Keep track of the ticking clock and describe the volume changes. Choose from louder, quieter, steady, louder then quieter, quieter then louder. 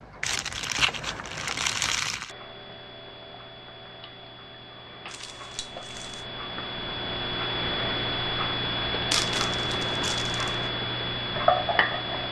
louder.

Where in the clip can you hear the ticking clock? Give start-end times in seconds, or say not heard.
0.0-12.2.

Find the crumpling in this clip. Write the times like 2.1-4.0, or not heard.
0.2-2.4, 5.0-6.2, 9.1-10.6.